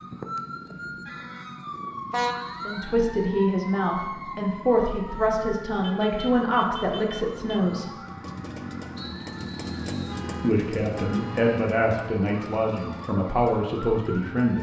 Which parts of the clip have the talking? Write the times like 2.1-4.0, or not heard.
2.6-7.9, 10.4-14.5.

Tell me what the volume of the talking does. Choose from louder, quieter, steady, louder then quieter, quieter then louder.
steady.